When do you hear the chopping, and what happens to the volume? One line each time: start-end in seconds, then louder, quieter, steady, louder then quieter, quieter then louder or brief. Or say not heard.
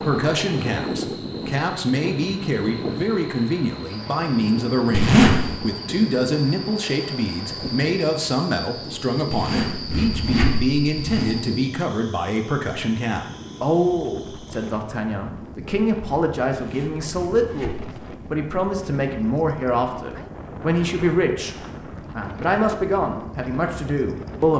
not heard.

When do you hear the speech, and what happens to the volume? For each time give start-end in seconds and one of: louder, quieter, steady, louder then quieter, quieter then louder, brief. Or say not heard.
0.1-21.6 steady
22.1-24.5 brief.